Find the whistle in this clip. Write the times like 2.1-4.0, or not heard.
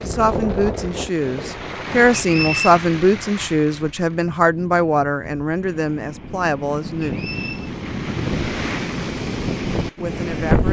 2.1-2.8, 7.0-7.7.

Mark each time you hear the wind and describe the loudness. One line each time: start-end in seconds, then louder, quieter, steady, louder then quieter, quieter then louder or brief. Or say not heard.
0.0-10.6 quieter then louder.